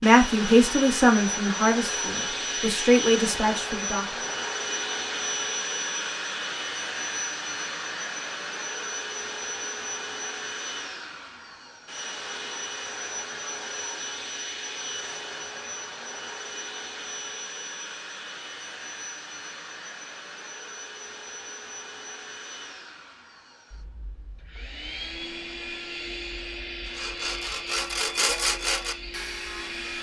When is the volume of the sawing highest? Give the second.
28 s.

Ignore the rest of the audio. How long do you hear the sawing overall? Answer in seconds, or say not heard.
3 s.